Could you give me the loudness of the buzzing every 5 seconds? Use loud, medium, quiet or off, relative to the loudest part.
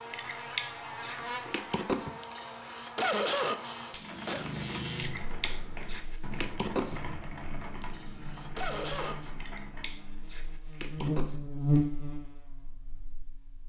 medium, quiet, loud.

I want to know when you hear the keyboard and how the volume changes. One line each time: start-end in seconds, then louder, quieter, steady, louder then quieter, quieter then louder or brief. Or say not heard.
4.0-10.3 quieter.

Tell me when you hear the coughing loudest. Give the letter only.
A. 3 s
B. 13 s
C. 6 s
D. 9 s
A.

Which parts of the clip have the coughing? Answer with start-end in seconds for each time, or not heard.
2.2-4.5, 7.8-9.3.